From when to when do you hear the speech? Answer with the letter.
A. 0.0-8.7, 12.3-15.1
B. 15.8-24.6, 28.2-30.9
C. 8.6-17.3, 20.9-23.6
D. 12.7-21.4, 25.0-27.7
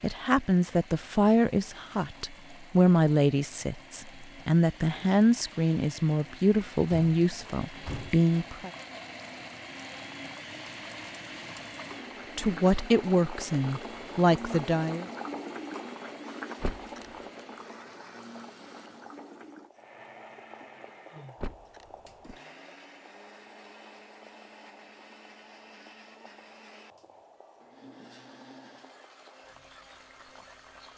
A.